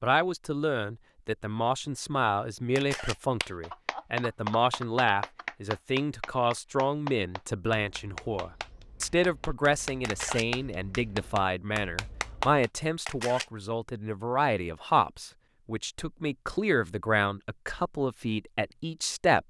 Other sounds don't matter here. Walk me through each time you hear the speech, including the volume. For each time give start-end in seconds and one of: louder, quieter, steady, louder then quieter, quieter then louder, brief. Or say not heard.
0.0-19.4 steady.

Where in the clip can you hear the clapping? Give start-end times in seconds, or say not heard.
3.4-12.7.